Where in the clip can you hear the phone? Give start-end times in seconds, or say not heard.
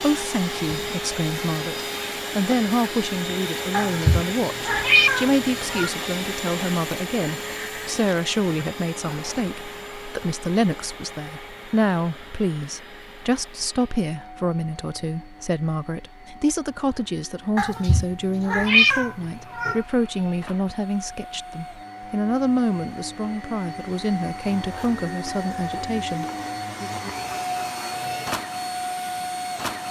not heard.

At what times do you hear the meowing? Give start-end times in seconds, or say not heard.
3.7-5.9, 17.6-19.8.